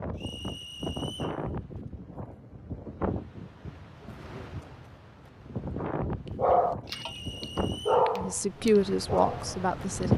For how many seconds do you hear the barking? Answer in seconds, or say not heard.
4 s.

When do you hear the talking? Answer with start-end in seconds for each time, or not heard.
8.2-10.1.